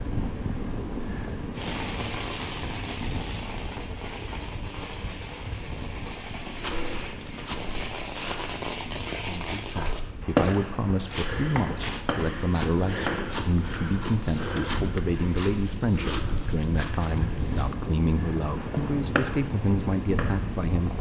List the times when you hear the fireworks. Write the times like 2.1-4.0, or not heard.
1.6-13.3, 18.4-20.9.